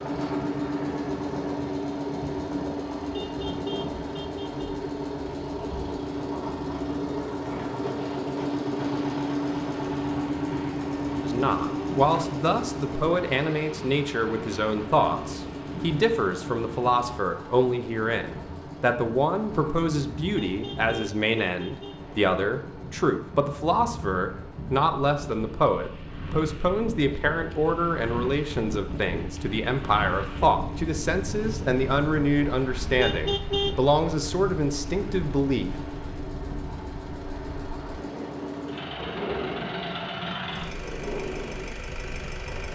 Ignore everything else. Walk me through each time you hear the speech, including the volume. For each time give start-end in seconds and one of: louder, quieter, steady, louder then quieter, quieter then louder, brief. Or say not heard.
11.2-35.8 steady.